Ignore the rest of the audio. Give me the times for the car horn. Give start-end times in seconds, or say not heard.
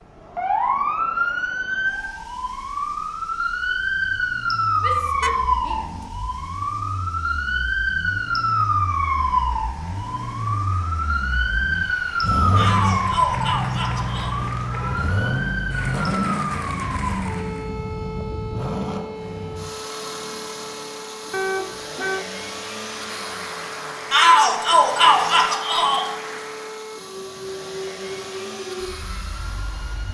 5.2-6.1, 21.3-22.2.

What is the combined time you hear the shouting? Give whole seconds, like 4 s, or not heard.
5 s.